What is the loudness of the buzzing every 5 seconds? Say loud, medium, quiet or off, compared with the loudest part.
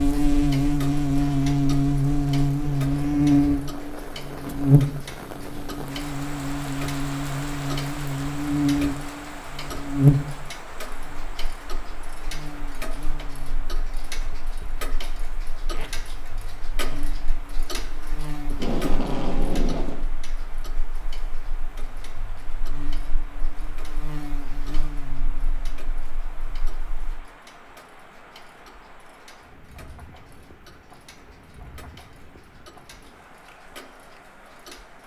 loud, medium, medium, quiet, quiet, quiet, off.